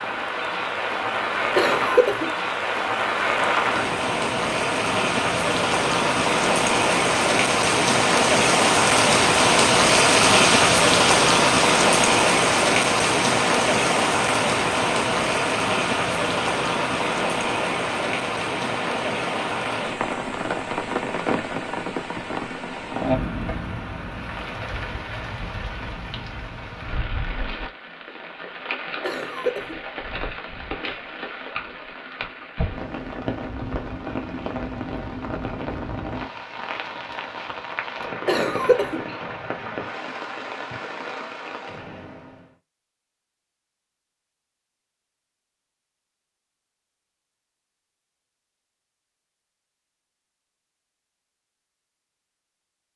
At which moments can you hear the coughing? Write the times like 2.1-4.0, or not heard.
1.6-2.3, 29.0-29.8, 38.2-39.0.